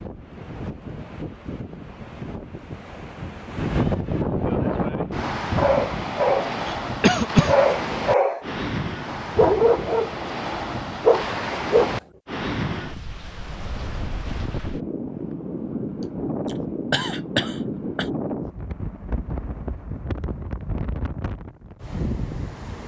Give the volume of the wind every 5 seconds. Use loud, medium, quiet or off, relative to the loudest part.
loud, loud, loud, loud, medium.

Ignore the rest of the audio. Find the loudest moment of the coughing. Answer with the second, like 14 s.
7 s.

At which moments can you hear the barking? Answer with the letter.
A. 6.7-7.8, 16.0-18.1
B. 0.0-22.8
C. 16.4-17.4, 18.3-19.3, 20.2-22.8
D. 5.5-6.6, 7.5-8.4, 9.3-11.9
D.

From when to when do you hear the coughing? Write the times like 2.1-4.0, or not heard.
6.7-7.8, 16.0-18.1.